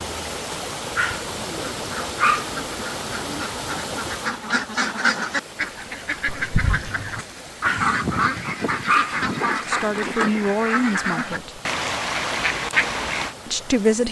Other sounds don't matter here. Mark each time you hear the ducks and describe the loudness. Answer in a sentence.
The ducks can be heard from 1.8 to 13.3 s, getting louder.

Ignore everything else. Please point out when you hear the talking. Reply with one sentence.
You can hear the talking from 9.6 to 11.6 s and from 13.4 to 14.0 s.